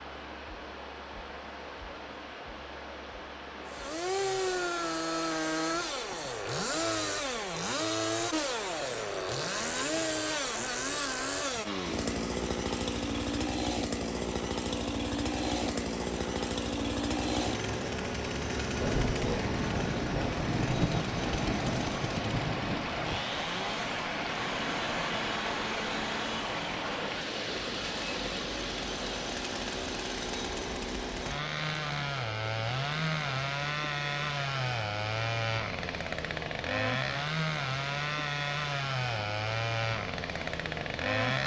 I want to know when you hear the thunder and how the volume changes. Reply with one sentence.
The thunder can be heard from 18.8 to 23.2 s, at a steady volume.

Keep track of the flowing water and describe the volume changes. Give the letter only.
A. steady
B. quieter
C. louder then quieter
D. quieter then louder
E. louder
C.